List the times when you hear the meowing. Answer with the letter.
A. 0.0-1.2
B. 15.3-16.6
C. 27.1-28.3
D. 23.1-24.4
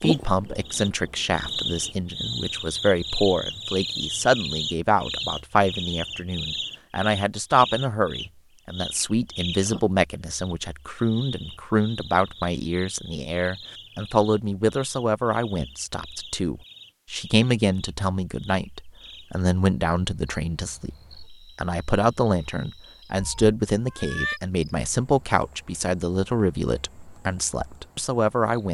D.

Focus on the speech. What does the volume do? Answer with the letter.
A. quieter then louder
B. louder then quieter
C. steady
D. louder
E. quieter
C.